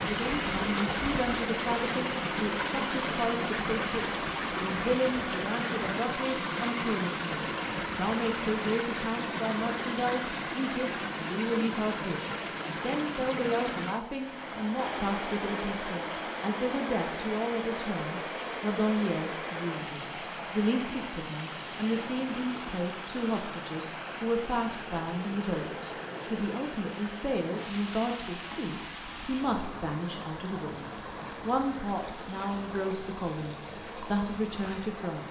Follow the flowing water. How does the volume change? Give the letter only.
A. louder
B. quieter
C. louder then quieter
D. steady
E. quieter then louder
B.